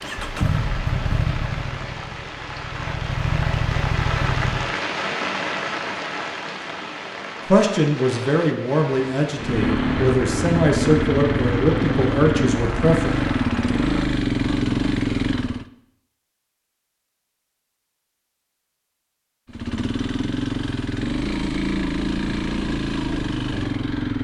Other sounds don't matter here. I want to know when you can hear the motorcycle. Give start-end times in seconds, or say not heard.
0.0-4.8, 9.3-15.7, 19.4-24.1.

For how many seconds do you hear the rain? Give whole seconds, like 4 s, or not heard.
14 s.